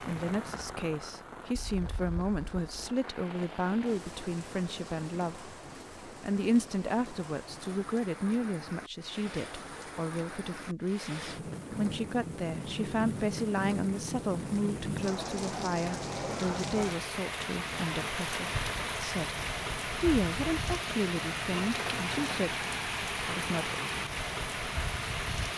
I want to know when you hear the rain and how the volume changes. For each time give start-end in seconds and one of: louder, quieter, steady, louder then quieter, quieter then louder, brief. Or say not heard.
0.0-25.5 louder.